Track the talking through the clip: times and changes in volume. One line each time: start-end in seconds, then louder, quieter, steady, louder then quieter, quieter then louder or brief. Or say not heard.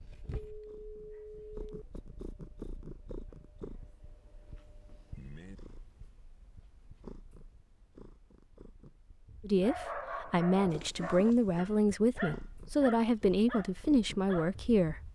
9.4-15.0 steady.